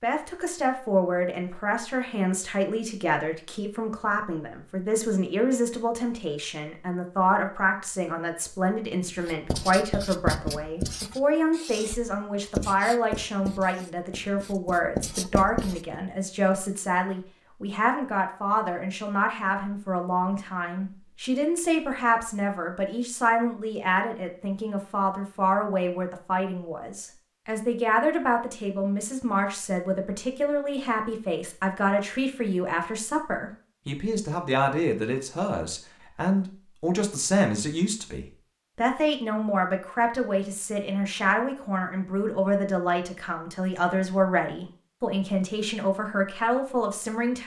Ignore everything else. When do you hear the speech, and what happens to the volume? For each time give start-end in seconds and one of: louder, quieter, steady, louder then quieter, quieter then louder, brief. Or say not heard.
0.0-47.4 steady.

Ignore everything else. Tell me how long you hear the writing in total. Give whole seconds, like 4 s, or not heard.
7 s.